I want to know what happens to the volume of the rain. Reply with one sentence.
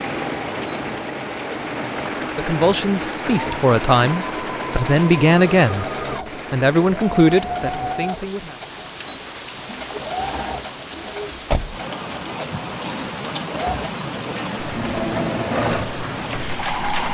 The volume of the rain goes down, then up.